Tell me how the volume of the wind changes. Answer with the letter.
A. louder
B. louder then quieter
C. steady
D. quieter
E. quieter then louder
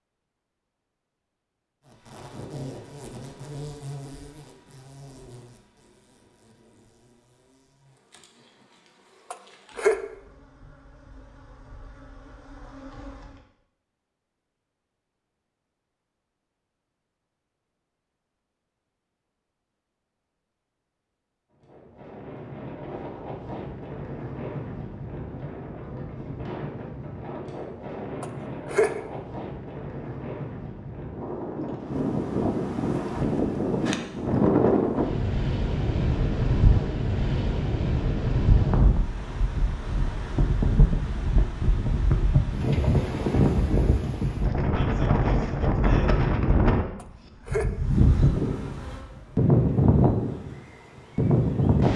A.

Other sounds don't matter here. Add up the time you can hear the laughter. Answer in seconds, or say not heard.
2 s.